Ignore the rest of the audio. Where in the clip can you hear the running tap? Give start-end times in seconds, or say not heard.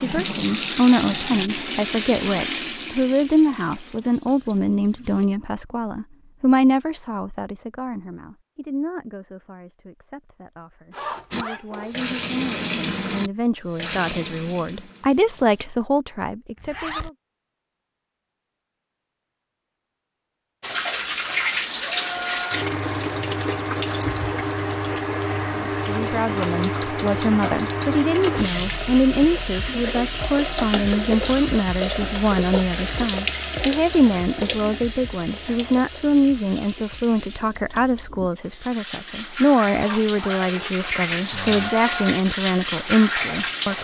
0.0-5.3, 11.3-15.7, 20.6-43.8.